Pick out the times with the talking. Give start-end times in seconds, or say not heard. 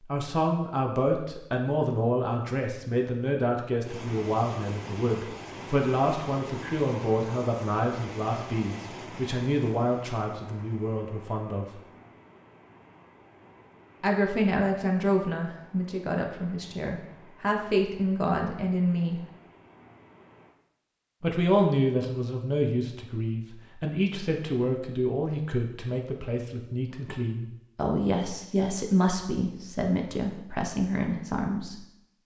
0.0-11.8, 14.0-19.2, 21.2-31.9.